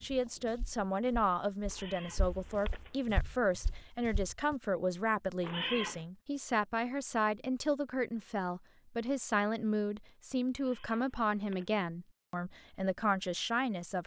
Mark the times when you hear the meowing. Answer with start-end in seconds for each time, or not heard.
1.7-3.0, 5.4-6.0, 10.6-11.8.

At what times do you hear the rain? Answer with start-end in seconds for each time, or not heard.
not heard.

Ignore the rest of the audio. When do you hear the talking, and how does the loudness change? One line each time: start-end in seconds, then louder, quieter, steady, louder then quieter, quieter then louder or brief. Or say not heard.
0.0-14.0 steady.